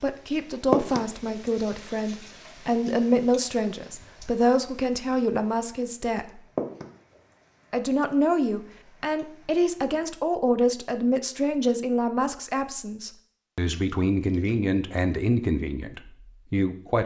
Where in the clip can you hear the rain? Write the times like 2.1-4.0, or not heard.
0.0-9.9.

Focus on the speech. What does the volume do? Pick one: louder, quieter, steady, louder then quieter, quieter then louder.
steady.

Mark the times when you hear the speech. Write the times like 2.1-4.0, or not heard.
0.0-6.4, 7.7-17.0.